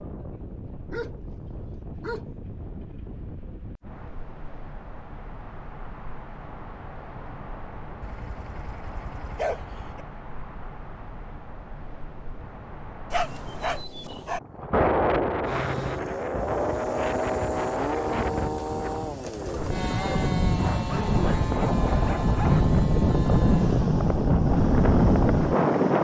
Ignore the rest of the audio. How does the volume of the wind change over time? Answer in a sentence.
The loudness of the wind goes up.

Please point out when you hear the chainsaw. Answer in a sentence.
The chainsaw can be heard from 15.4 to 25.9 s.